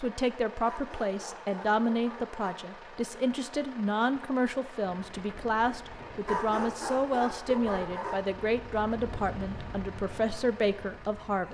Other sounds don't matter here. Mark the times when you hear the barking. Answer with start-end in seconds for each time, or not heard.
0.6-2.5, 6.2-8.2.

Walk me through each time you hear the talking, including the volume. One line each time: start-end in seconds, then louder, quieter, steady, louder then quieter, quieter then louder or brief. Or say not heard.
0.0-11.4 steady.